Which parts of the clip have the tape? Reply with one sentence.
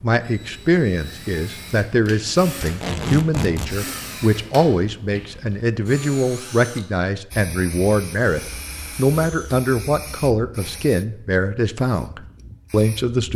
You can hear the tape from 2.6 to 3.8 s.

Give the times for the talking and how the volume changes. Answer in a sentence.
The talking can be heard from 0.0 to 13.3 s, at a steady volume.